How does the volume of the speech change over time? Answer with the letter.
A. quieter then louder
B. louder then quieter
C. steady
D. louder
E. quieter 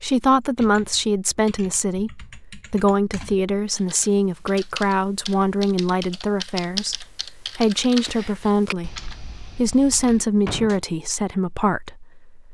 C.